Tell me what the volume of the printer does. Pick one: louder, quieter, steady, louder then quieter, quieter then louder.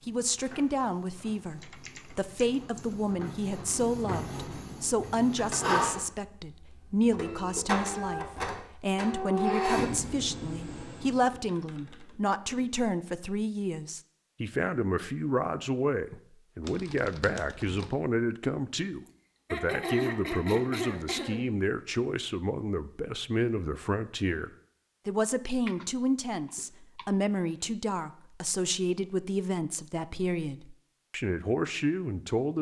louder.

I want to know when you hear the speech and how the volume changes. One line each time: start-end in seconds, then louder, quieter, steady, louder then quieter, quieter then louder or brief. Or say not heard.
0.1-32.5 steady.